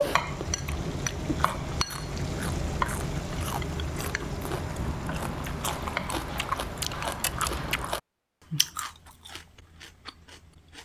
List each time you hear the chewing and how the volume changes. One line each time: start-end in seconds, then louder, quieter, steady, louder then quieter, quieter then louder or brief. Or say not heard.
0.0-10.7 louder then quieter.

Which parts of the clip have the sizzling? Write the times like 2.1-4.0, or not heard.
0.0-7.9.